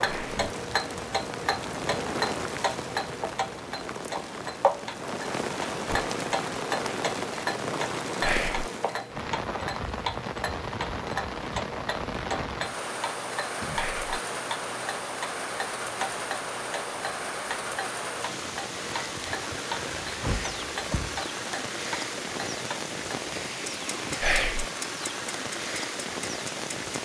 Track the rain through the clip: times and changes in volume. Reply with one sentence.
The rain can be heard from 0.0 to 27.0 s, at a steady volume.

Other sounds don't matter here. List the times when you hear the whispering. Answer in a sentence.
You can hear the whispering from 0.1 to 0.5 s, from 8.2 to 8.7 s, from 13.7 to 14.2 s and from 24.2 to 24.6 s.